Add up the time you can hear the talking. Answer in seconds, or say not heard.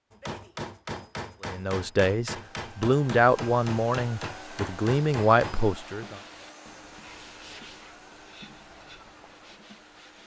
5 s.